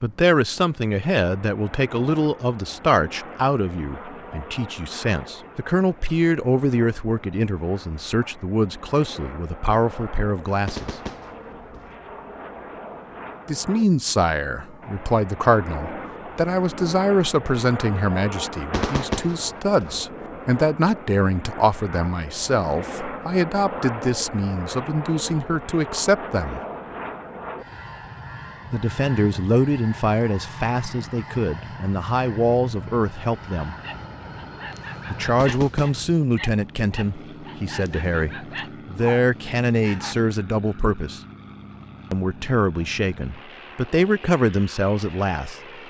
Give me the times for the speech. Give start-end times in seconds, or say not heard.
0.0-10.9, 13.4-26.6, 28.7-33.8, 35.1-41.2, 42.1-45.5.